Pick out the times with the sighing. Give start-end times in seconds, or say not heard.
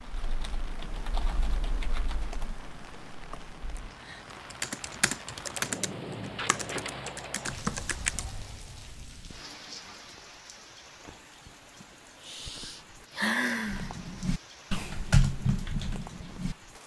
3.3-4.2, 11.8-13.9.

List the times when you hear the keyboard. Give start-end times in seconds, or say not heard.
0.0-8.3, 13.7-16.6.